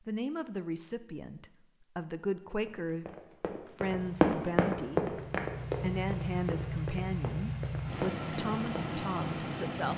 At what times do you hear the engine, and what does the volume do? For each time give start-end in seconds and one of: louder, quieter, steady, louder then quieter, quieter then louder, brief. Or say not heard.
3.8-9.9 louder.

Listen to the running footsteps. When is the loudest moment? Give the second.
4 s.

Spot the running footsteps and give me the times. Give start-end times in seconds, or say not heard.
2.6-8.9.